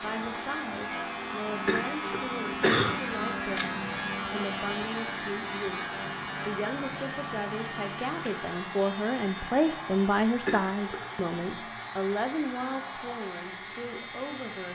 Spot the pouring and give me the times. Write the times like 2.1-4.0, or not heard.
not heard.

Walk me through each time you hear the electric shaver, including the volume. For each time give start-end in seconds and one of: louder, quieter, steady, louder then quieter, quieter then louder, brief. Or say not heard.
0.0-14.6 quieter.